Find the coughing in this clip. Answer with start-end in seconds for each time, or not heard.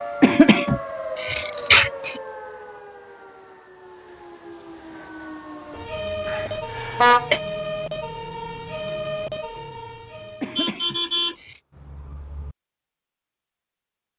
0.2-2.2, 6.2-7.4, 10.4-11.6.